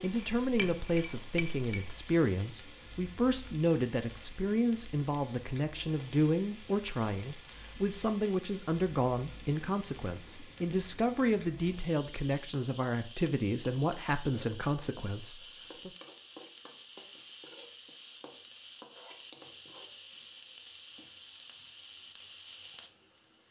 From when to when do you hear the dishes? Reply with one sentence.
You can hear the dishes from 0.0 to 1.9 s.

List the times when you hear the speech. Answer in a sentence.
The speech can be heard from 0.0 to 15.9 s.